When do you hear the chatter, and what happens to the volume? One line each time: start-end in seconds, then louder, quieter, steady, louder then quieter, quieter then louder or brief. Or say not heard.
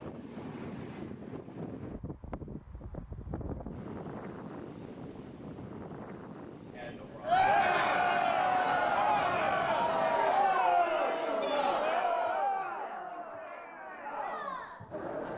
6.8-15.3 quieter.